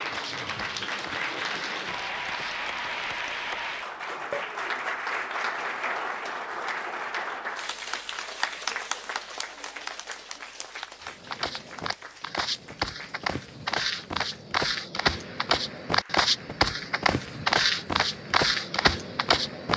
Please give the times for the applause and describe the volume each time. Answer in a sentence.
You can hear the applause from 0.0 to 19.7 s, getting quieter.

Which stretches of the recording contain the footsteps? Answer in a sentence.
You can hear the footsteps from 0.0 to 2.7 s and from 11.0 to 19.7 s.